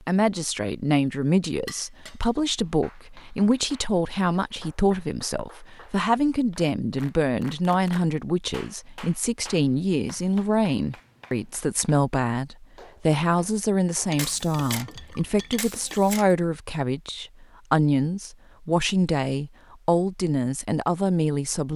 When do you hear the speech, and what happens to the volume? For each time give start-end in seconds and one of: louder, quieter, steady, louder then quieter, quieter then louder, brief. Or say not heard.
0.1-21.7 steady.